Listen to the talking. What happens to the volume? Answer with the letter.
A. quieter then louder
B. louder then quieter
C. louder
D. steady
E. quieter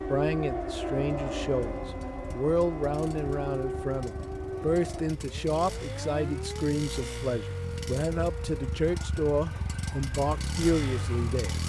D.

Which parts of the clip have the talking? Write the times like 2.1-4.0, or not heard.
0.1-11.6.